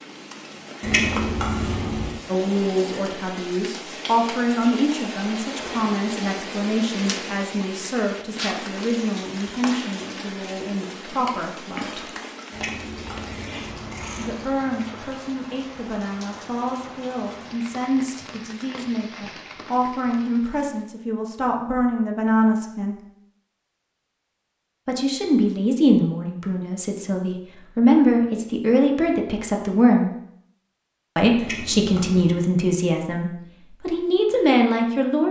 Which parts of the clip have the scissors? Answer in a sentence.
The scissors can be heard from 0.8 to 2.1 s, from 12.5 to 14.5 s and from 31.4 to 32.4 s.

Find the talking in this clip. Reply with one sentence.
You can hear the talking from 2.2 to 12.1 s, from 14.2 to 22.9 s, from 24.9 to 30.1 s and from 31.1 to 35.2 s.